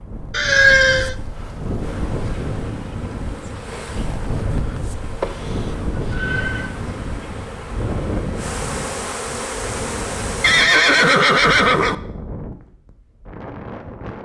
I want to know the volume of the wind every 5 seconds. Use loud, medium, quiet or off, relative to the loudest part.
loud, loud, medium.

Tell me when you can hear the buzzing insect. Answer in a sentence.
You can hear the buzzing insect from 1.8 to 10.7 s.